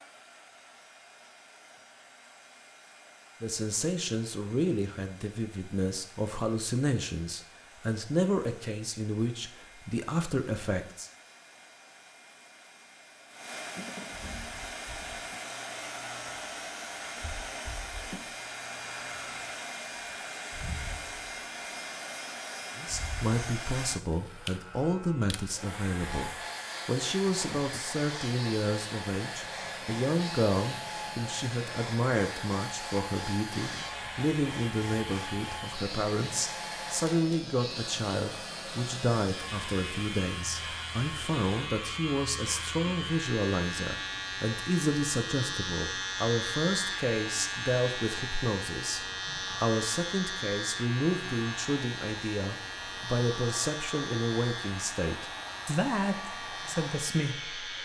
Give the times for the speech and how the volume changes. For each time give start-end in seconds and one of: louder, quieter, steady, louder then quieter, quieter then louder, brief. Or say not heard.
3.4-11.1 steady
22.8-57.6 steady.